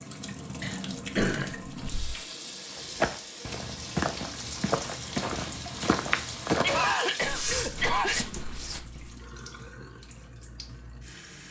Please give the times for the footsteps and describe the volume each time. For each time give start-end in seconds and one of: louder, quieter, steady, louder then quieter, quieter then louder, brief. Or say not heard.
2.8-9.1 quieter.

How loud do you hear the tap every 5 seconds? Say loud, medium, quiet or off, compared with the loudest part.
loud, loud, medium.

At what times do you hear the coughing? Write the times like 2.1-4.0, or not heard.
0.6-2.2, 6.5-8.2.